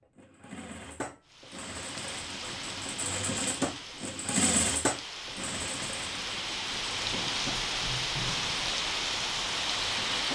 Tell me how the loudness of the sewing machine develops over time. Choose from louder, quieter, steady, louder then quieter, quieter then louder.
louder then quieter.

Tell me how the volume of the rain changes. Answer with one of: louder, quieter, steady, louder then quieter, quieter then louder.
louder.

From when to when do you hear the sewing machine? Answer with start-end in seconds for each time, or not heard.
0.1-10.2.